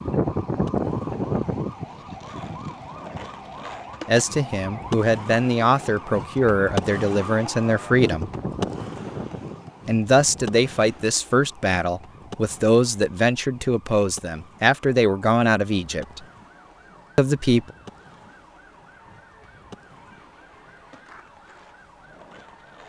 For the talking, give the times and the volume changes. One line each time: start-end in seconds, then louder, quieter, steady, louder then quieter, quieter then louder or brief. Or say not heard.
4.0-8.2 steady
9.8-16.2 steady
17.1-17.6 brief.